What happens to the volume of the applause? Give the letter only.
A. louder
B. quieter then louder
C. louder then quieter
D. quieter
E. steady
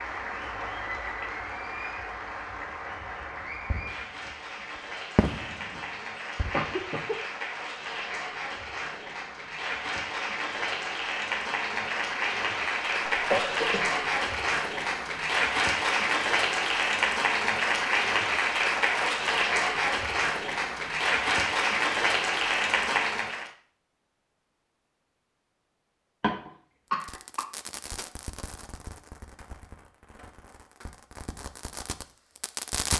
A.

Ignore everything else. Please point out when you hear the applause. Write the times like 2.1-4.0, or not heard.
0.0-23.5.